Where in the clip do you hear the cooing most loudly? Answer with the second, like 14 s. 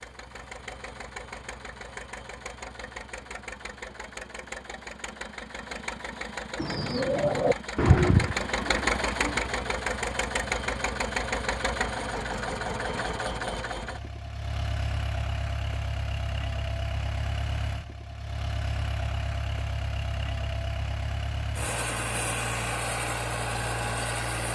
8 s.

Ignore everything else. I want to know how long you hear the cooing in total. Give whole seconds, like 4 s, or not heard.
3 s.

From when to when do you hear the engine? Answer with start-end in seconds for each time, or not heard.
0.0-24.5.